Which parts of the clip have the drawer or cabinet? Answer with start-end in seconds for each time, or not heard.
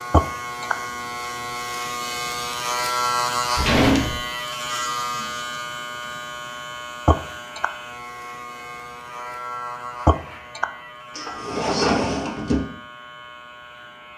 3.5-4.2, 11.2-12.7.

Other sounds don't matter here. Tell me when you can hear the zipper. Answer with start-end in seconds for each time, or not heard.
not heard.